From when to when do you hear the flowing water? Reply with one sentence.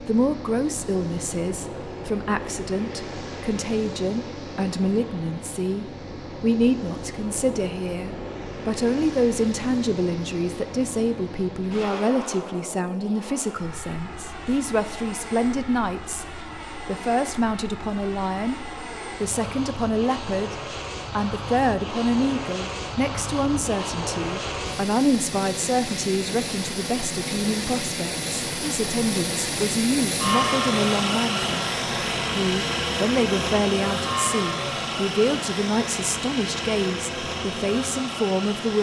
You can't hear the flowing water here.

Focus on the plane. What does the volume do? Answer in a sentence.
The volume of the plane goes up.